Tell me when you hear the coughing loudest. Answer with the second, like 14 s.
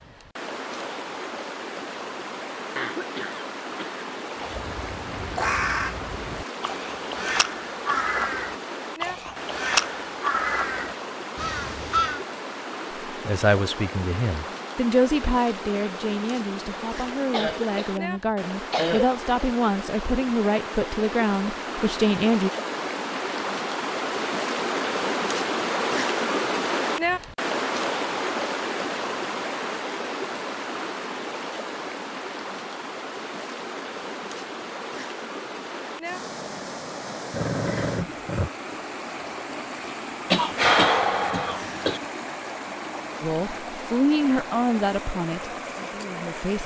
41 s.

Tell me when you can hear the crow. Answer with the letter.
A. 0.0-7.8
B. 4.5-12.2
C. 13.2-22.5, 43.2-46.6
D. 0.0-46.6
B.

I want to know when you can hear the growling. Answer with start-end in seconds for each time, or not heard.
37.3-38.5.